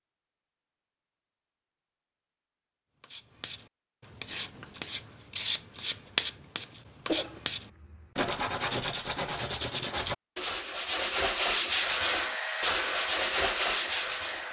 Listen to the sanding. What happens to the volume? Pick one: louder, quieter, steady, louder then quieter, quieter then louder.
louder.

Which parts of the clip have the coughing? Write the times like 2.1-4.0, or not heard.
7.0-8.1.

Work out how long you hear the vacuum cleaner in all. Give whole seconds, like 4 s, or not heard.
3 s.